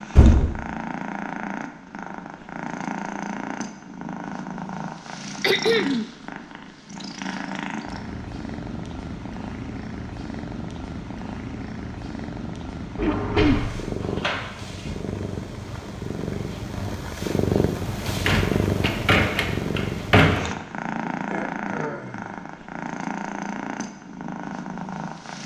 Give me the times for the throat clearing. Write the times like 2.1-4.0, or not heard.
5.4-6.0, 13.0-13.6, 21.1-22.4.